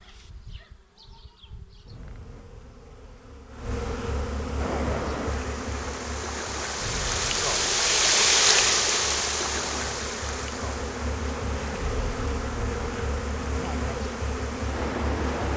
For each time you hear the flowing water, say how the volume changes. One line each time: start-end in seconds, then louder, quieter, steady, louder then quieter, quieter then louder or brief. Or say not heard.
4.5-15.5 louder then quieter.